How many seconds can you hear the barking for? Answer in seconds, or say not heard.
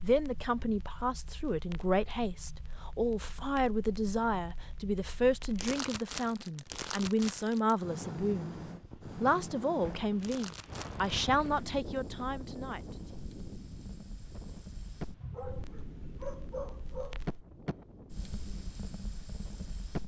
2 s.